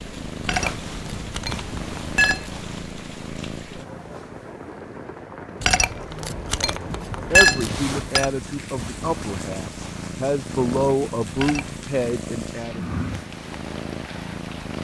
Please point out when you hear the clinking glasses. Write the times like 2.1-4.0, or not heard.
0.4-2.5, 5.6-8.3, 11.3-12.1.